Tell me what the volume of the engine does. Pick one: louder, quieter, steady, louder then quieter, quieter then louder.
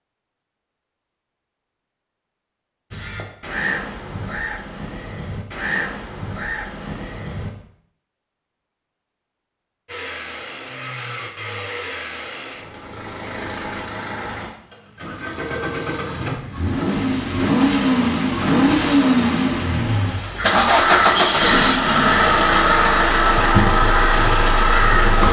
louder.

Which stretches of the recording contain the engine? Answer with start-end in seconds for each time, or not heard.
9.8-25.2.